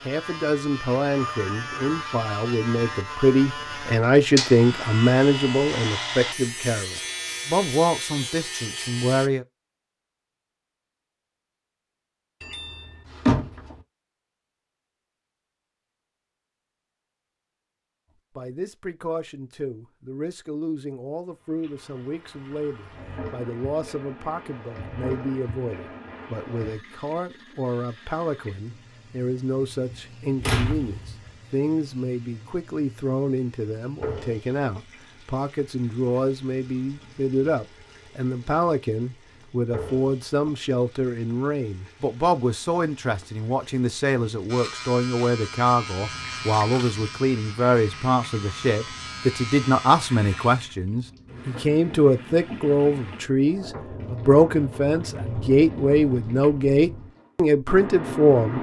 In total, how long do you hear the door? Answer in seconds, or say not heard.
3 s.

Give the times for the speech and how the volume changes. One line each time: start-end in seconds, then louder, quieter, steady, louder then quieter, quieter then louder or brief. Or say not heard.
0.1-9.4 louder then quieter
18.4-58.5 louder.